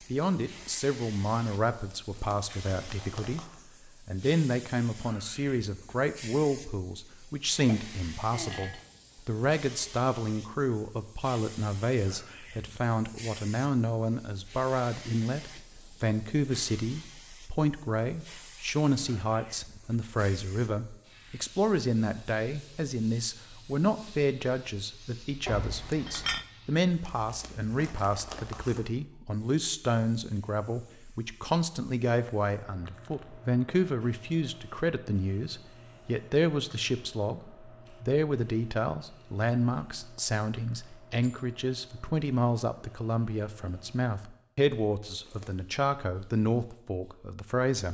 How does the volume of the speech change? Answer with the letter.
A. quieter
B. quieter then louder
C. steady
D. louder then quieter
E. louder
C.